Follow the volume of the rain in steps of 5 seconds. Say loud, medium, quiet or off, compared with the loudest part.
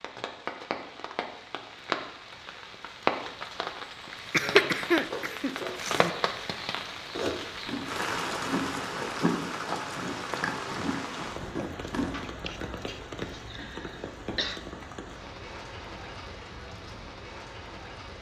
loud, loud, medium, medium.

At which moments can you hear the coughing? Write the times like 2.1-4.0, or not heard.
4.1-6.1, 12.1-14.6.